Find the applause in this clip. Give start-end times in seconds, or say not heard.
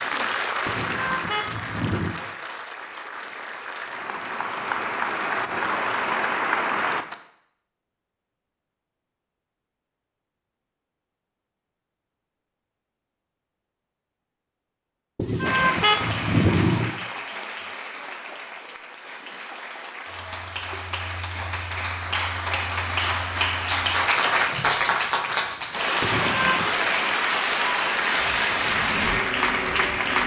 0.0-7.2, 15.4-30.2.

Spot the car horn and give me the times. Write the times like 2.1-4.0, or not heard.
0.7-2.1, 15.2-16.9, 26.0-26.8.